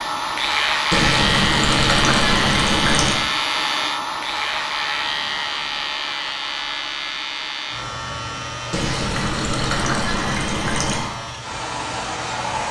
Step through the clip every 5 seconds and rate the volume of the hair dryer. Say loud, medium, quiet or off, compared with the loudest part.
loud, medium, loud.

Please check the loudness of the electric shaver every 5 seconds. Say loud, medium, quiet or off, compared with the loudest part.
loud, medium, medium.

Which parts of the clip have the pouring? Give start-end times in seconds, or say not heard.
0.9-3.2, 8.7-11.1.